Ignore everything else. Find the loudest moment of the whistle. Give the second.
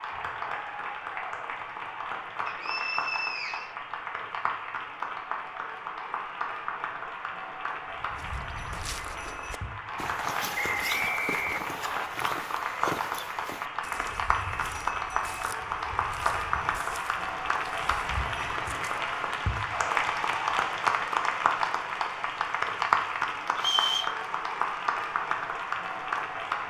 24 s.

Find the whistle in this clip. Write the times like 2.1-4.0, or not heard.
2.5-3.8, 10.6-12.1, 23.6-24.1.